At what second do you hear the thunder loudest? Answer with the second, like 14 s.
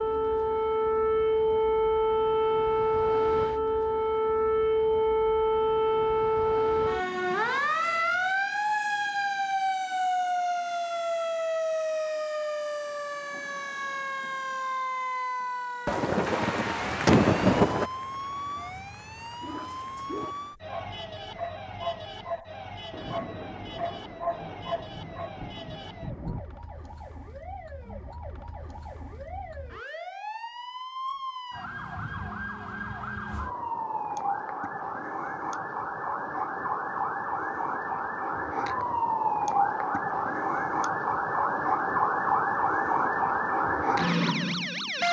17 s.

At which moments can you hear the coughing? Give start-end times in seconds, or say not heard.
not heard.